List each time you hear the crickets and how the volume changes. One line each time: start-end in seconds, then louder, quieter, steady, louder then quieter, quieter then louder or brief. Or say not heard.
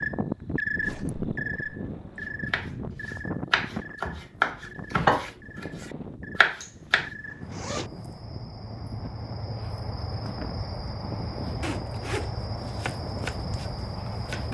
0.0-14.4 quieter then louder.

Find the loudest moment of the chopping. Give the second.
5 s.